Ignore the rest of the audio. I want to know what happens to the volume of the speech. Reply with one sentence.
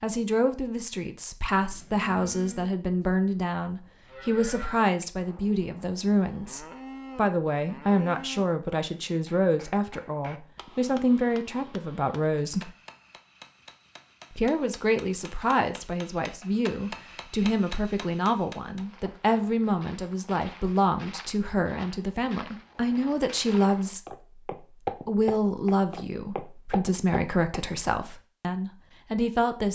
The volume of the speech stays about the same.